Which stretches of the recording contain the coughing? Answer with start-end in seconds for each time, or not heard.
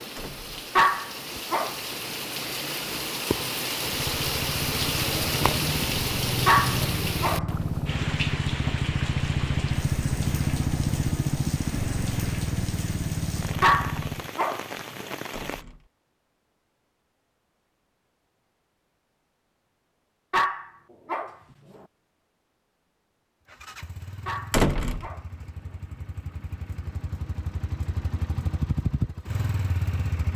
not heard.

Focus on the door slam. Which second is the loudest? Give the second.
25 s.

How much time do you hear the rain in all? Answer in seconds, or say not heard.
16 s.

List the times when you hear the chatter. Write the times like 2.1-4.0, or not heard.
not heard.